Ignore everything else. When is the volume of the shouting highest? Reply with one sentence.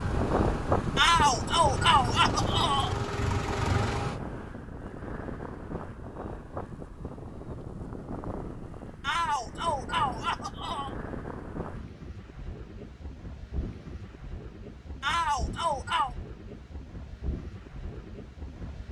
The loudest moment of the shouting is at 1 second.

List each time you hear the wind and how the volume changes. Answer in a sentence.
The wind can be heard from 0.0 to 18.8 s, getting quieter.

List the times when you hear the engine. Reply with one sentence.
You can hear the engine from 0.0 to 4.2 s.